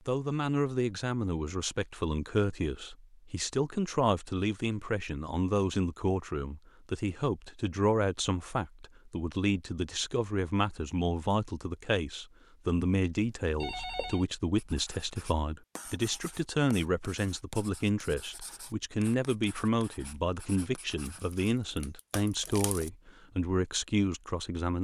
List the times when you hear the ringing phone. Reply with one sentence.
The ringing phone can be heard from 13.6 to 14.2 s.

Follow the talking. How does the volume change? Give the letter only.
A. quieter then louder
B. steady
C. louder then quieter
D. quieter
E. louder
B.